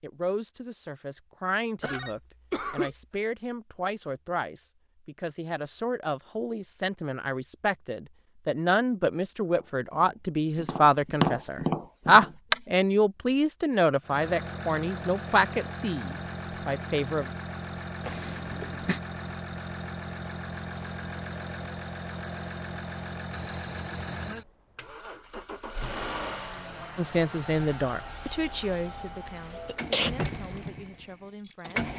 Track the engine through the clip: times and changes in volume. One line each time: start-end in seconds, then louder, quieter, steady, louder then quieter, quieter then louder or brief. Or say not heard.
14.0-31.9 steady.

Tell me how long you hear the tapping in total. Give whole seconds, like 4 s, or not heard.
3 s.